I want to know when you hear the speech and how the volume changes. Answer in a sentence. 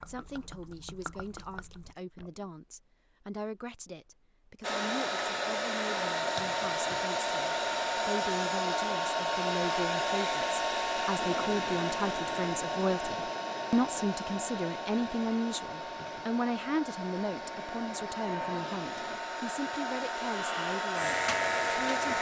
The speech can be heard from 0.1 to 22.1 s, getting louder then quieter.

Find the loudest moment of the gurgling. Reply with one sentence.
The loudest moment of the gurgling is at 1 second.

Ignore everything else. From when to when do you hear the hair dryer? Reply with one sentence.
You can hear the hair dryer from 4.6 to 22.1 s.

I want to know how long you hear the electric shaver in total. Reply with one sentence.
You can hear the electric shaver for 2 seconds altogether.